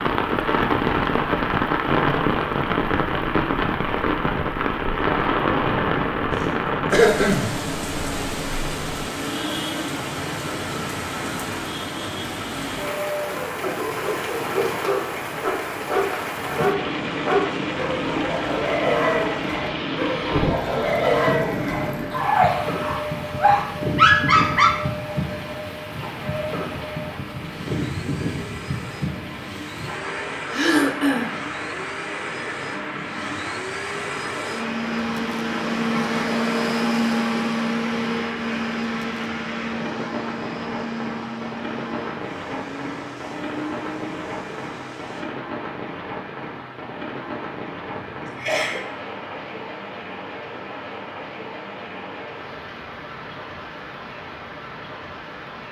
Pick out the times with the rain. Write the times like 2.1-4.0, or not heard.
0.0-55.6.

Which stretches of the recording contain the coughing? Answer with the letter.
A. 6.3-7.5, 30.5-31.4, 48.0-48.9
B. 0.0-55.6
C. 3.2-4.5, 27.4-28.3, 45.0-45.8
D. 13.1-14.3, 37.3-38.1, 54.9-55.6
A.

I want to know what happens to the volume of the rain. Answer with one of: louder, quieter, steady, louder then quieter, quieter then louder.
quieter.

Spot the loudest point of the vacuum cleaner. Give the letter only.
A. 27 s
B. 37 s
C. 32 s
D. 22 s
B.